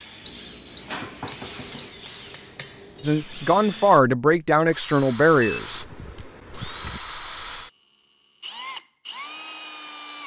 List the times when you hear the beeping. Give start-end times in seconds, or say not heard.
0.2-1.9, 5.3-7.0.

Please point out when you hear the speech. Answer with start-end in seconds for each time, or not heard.
3.0-5.8.